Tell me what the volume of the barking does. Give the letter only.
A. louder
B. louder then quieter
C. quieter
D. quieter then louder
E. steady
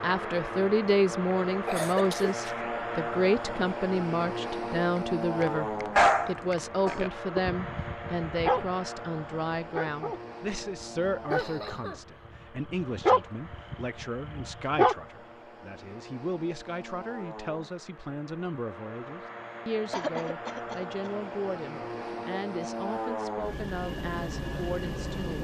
D.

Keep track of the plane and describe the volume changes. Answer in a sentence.
The volume of the plane goes down, then up.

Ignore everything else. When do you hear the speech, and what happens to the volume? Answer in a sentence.
The speech can be heard from 0.0 to 25.4 s, getting quieter.